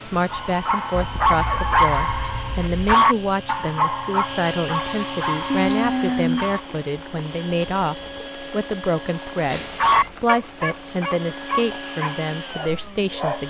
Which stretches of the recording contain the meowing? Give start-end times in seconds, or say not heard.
0.9-3.0, 5.5-6.6, 9.4-10.1.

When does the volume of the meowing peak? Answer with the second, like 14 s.
6 s.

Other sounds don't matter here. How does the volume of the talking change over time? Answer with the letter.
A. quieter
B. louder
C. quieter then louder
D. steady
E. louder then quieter
D.